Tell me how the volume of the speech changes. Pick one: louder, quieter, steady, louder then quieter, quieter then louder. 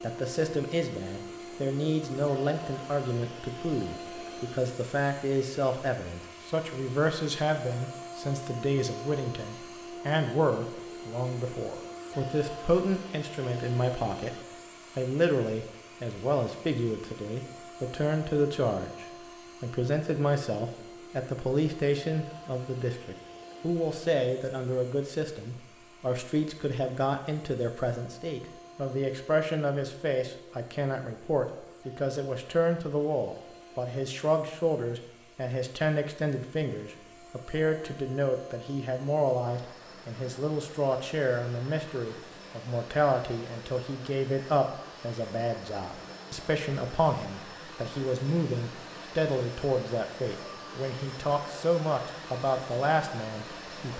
steady.